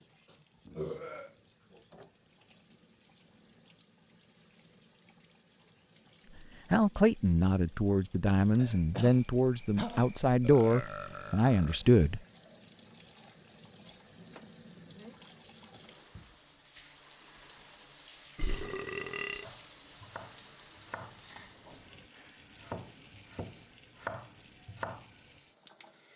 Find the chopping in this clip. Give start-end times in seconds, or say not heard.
19.4-25.1.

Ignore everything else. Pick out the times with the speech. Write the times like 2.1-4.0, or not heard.
6.7-12.2.